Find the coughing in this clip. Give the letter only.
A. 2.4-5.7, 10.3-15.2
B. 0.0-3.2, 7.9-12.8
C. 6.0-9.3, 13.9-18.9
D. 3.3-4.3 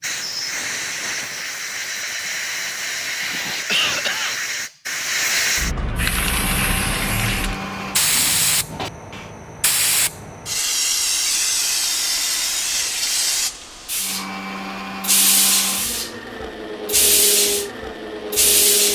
D.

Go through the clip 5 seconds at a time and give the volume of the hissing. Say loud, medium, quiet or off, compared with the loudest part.
medium, loud, loud, loud.